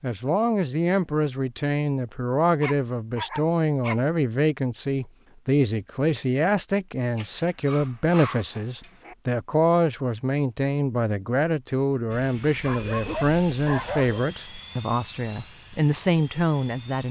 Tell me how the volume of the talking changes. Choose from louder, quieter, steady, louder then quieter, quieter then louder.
steady.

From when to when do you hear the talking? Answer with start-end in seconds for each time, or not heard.
0.0-17.0.